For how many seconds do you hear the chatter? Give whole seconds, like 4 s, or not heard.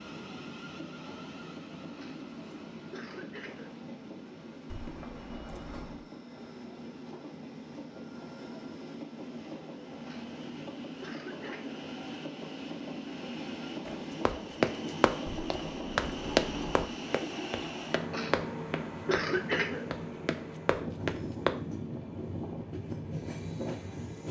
not heard.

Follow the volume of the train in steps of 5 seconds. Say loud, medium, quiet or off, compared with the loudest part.
medium, medium, loud, loud, loud.